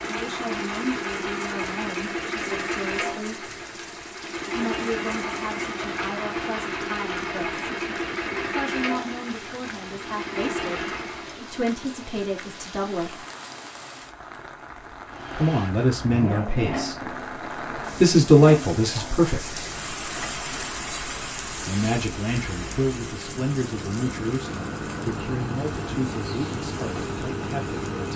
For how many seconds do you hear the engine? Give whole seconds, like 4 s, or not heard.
24 s.